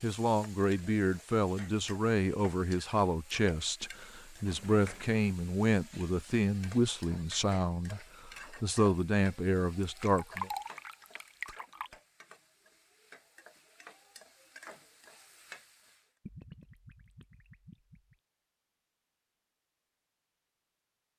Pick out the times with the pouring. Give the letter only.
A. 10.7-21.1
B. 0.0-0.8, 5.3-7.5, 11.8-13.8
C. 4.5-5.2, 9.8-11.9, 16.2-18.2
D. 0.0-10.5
C.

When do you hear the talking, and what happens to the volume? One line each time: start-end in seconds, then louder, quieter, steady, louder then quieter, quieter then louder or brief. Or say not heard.
0.0-10.5 steady.